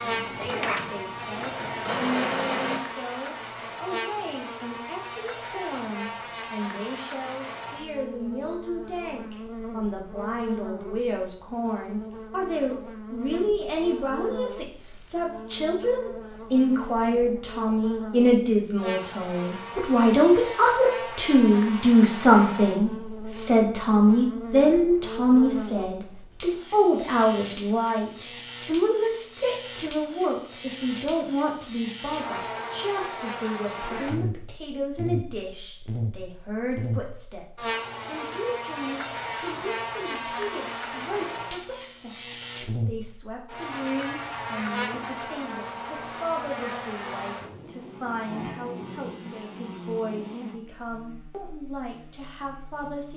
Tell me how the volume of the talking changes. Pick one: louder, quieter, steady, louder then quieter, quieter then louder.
louder then quieter.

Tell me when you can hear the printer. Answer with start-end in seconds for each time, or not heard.
0.0-2.8.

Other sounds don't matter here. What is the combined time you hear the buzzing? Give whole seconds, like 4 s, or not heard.
53 s.